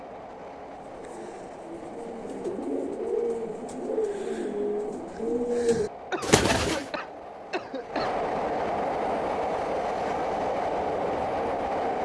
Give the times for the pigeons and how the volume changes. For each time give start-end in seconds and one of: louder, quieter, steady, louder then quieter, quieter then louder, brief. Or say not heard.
0.8-6.9 louder.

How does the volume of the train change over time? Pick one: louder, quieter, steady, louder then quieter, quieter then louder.
louder.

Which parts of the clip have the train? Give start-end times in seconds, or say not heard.
0.0-12.0.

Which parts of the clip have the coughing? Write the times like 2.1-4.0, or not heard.
6.1-8.2.